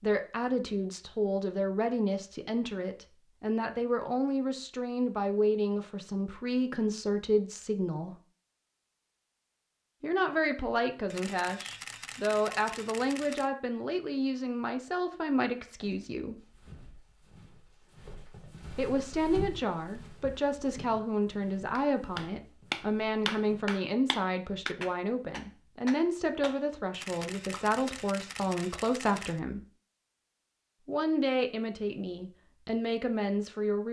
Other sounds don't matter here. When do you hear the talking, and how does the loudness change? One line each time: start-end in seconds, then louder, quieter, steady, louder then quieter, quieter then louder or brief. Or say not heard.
0.0-8.2 steady
10.0-16.4 steady
18.8-29.6 steady
30.9-33.8 brief.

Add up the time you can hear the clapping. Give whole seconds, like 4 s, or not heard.
6 s.